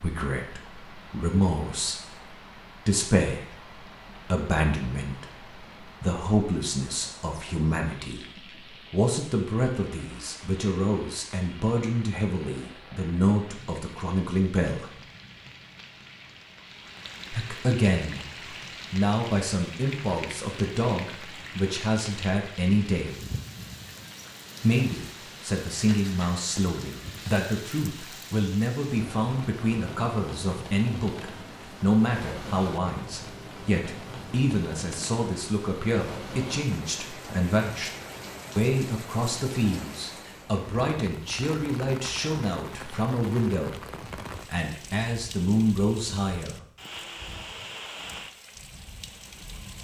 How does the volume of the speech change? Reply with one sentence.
The loudness of the speech stays about the same.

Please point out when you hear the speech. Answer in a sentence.
You can hear the speech from 0.0 to 15.0 s, from 17.3 to 23.2 s, from 24.6 to 37.9 s and from 38.5 to 46.6 s.